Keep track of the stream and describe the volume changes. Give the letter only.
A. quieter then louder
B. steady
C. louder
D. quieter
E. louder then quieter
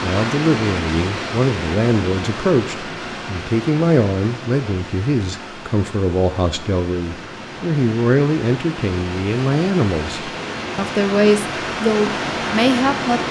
A.